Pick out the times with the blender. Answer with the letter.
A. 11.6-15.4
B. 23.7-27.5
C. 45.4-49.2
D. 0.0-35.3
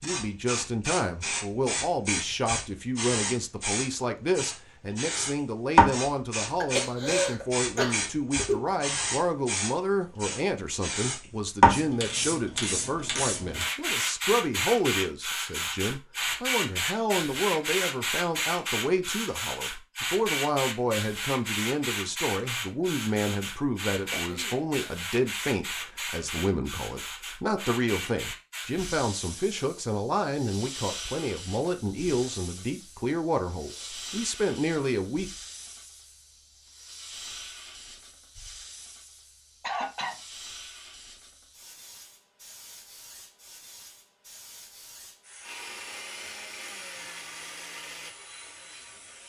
C.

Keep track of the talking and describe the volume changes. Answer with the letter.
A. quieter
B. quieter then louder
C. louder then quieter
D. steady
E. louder
D.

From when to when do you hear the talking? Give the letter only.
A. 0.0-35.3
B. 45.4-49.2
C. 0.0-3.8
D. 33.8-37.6
A.